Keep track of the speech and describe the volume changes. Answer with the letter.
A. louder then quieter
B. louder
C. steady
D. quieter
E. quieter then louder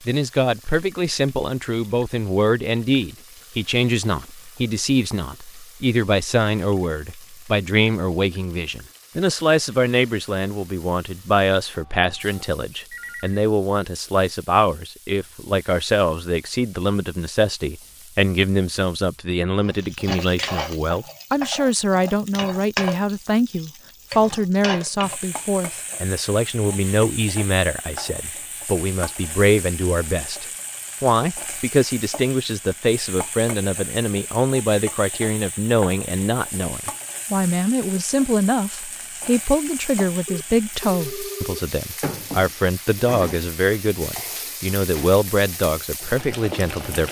C.